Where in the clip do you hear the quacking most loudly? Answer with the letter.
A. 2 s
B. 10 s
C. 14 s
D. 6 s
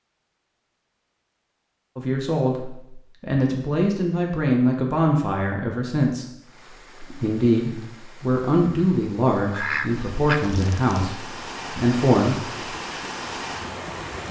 B.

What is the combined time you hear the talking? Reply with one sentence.
The talking can be heard for 10 seconds in total.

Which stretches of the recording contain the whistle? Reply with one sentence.
You can't hear the whistle here.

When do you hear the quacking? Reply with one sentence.
The quacking can be heard from 9.5 to 11.1 s.